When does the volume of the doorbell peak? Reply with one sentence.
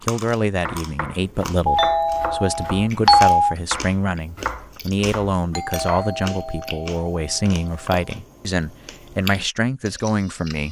The volume of the doorbell peaks at 3 seconds.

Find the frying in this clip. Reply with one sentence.
The frying can't be heard in this clip.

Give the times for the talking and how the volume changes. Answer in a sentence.
The talking can be heard from 0.0 to 10.6 s, at a steady volume.